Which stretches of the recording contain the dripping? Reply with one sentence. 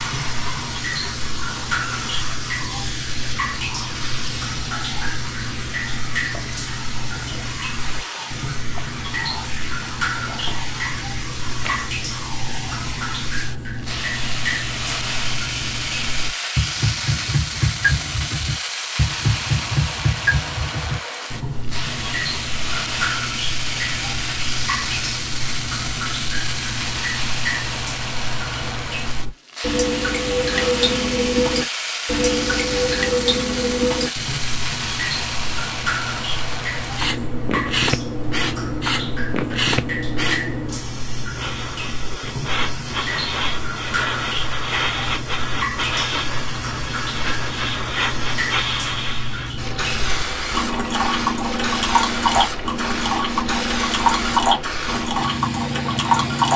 The dripping can be heard from 0.0 to 56.5 s.